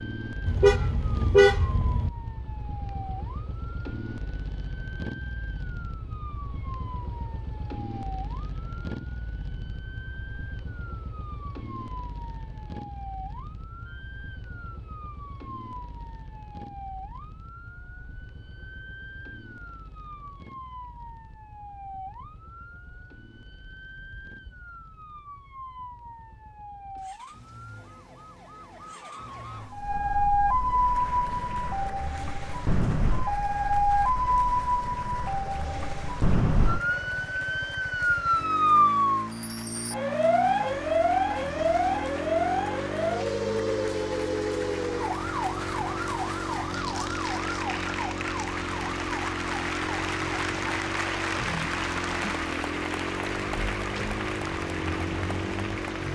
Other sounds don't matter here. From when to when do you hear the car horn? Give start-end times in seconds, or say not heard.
0.5-2.1.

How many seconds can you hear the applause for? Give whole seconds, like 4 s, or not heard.
25 s.